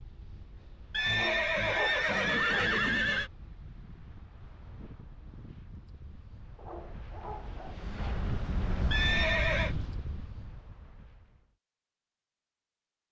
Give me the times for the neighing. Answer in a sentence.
The neighing can be heard from 0.9 to 3.3 s and from 8.9 to 9.8 s.